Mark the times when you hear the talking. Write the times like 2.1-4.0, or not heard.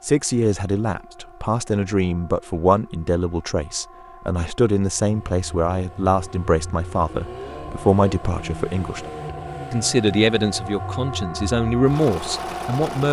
0.0-9.1, 9.7-13.0.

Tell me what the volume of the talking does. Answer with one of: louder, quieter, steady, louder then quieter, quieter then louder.
steady.